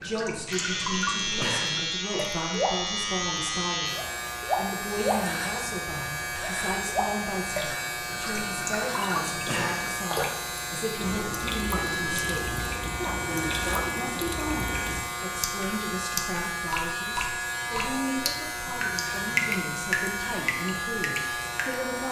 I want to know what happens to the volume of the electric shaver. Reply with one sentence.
The loudness of the electric shaver stays about the same.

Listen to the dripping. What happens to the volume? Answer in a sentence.
The loudness of the dripping stays about the same.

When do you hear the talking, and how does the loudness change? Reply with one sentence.
You can hear the talking from 0.0 to 22.0 s, at a steady volume.